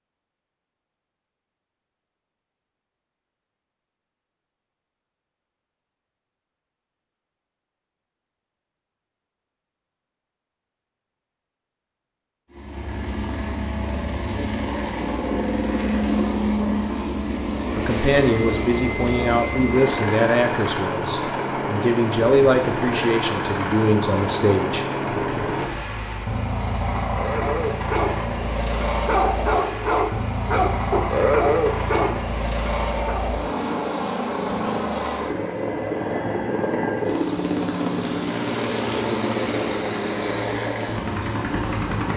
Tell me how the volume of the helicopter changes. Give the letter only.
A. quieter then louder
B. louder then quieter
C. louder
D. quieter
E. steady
E.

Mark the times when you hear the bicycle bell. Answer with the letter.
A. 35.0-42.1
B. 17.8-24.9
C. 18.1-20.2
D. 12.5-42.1
C.